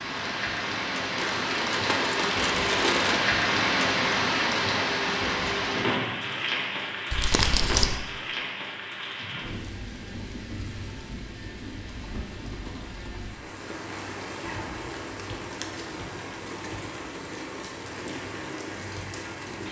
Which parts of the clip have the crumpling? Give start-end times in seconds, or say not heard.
1.1-3.2, 7.1-8.0, 14.4-15.8.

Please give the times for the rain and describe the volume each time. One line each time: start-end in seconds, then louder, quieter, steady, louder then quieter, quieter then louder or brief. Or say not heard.
0.0-19.6 quieter.